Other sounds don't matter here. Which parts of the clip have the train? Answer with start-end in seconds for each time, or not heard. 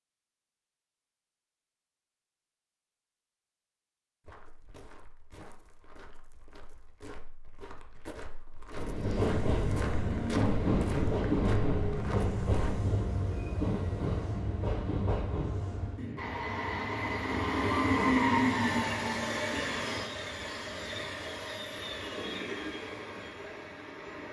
8.7-24.2.